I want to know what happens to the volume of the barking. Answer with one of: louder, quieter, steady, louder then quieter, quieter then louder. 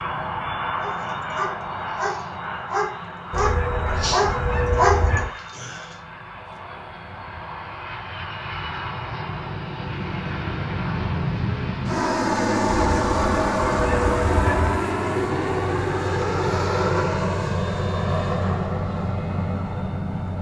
louder.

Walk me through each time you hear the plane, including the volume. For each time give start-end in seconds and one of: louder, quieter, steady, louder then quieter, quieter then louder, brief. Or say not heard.
0.0-20.3 quieter then louder.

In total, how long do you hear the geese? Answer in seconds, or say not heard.
4 s.